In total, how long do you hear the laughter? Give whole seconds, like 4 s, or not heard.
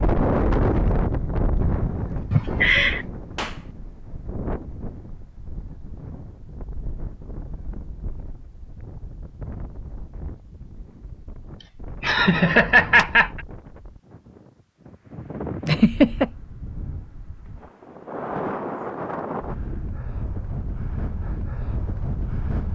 3 s.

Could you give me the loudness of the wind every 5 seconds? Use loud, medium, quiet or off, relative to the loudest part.
loud, quiet, quiet, medium, medium.